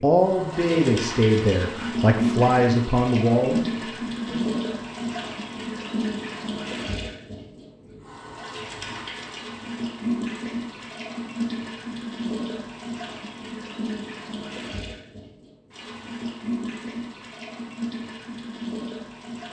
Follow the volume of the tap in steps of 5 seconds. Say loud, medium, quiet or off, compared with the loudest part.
loud, medium, loud, medium.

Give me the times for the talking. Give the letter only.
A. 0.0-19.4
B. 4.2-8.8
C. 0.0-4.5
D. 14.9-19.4
C.